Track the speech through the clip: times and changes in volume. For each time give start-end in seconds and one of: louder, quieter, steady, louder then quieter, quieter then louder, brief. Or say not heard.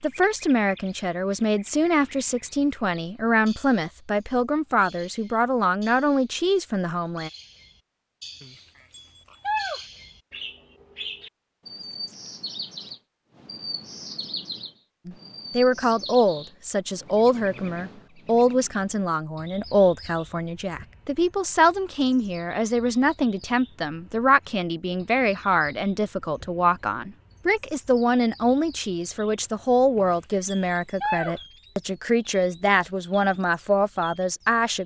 0.0-7.3 steady
15.1-34.8 steady.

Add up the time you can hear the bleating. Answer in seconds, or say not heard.
3 s.